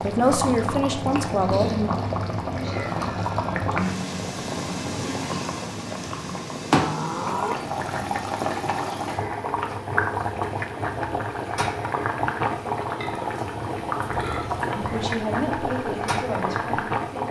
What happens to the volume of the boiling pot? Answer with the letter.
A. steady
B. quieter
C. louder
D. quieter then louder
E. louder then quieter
A.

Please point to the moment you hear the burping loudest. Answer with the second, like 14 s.
7 s.